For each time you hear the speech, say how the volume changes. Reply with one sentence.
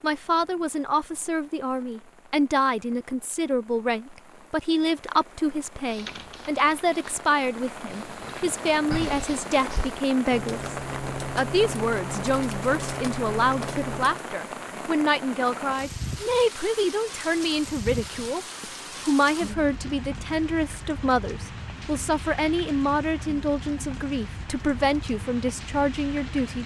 You can hear the speech from 0.0 to 10.8 s, at a steady volume; and from 11.3 to 26.6 s, at a steady volume.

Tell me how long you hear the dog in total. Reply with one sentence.
The dog can't be heard in this clip.